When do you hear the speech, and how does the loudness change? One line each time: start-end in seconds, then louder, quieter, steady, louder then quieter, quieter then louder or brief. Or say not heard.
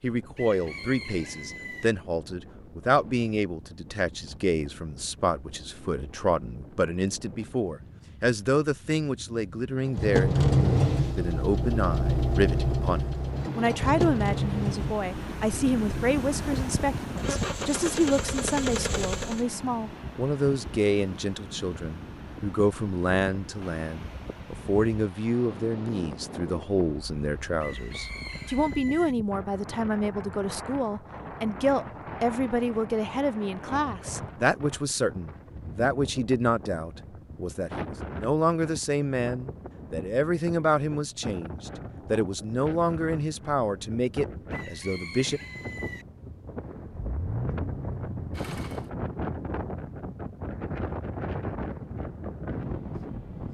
0.0-45.4 steady.